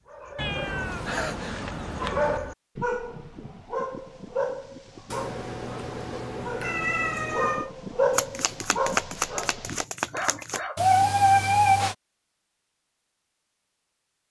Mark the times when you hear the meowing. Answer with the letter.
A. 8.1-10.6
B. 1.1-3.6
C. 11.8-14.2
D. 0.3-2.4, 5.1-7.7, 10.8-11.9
D.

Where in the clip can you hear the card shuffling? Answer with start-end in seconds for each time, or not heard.
8.1-10.6.